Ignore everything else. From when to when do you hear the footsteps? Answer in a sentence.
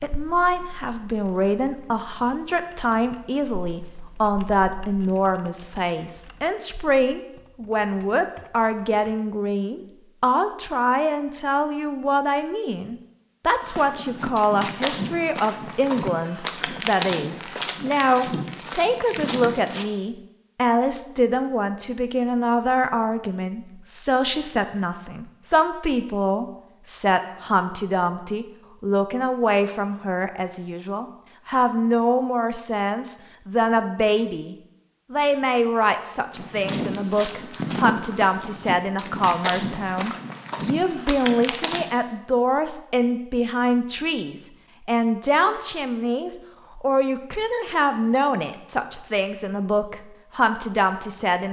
You can hear the footsteps from 13.6 to 19.9 s and from 36.3 to 41.9 s.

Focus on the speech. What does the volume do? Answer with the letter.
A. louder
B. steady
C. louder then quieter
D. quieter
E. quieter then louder
B.